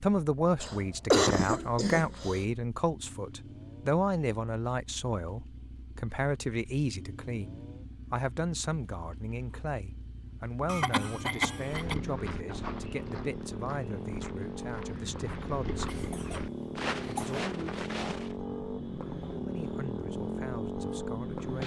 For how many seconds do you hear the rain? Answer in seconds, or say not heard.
not heard.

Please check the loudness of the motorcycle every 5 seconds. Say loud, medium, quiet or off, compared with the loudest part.
quiet, quiet, medium, loud, loud.